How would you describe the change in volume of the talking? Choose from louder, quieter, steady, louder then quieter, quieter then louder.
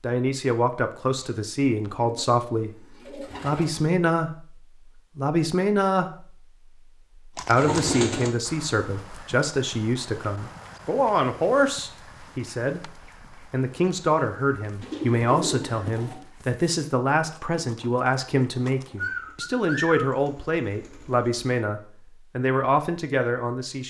steady.